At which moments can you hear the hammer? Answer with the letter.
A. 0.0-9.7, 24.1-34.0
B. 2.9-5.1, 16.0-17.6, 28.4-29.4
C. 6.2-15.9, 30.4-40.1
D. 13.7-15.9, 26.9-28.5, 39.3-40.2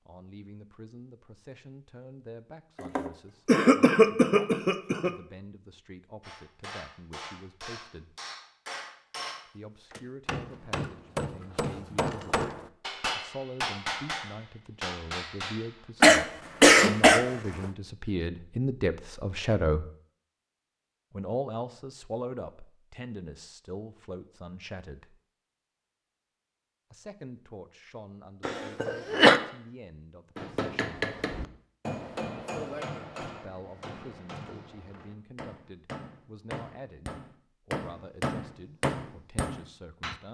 C.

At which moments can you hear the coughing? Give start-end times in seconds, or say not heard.
2.9-5.1, 16.0-17.6, 28.4-29.4.